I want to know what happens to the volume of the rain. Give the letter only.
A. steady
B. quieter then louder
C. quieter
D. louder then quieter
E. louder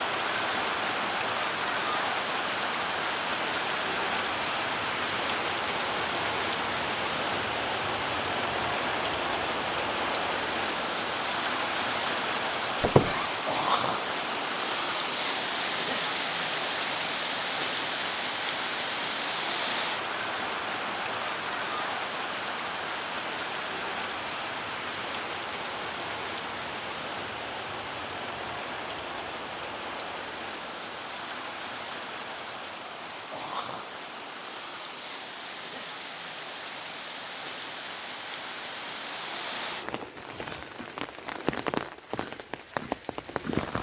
C.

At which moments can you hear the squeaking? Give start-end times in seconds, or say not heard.
12.8-13.3.